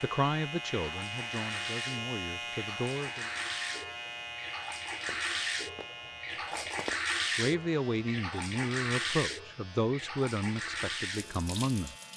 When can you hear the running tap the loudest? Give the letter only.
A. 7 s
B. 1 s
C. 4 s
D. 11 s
A.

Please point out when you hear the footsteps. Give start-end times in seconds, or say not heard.
5.0-7.0.